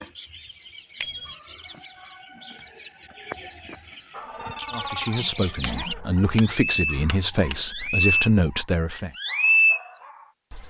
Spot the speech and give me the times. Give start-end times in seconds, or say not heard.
4.7-9.1.